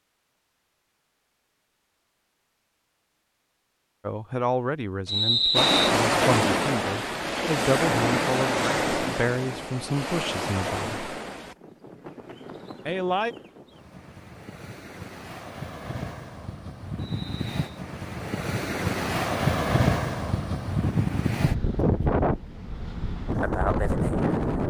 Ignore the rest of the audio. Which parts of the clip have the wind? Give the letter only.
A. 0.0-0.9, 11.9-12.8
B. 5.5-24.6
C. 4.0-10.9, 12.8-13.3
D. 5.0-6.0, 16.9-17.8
B.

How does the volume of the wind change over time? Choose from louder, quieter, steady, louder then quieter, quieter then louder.
quieter then louder.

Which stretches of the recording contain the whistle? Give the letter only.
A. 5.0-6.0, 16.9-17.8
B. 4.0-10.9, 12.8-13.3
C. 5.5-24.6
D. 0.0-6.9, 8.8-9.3
A.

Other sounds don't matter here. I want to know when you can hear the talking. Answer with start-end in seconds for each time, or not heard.
4.0-10.9, 12.8-13.3.